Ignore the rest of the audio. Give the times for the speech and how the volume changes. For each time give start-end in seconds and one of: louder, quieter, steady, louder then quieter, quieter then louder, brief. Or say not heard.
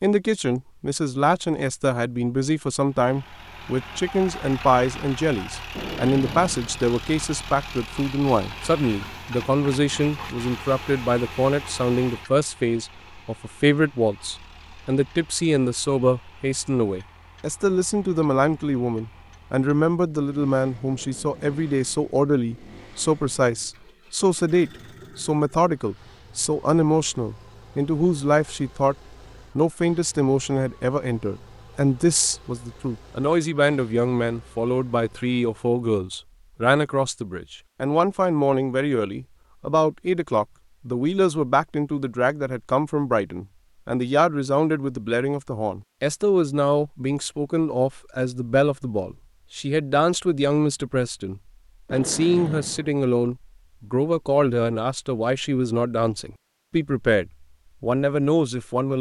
0.0-28.9 steady
29.6-58.9 steady.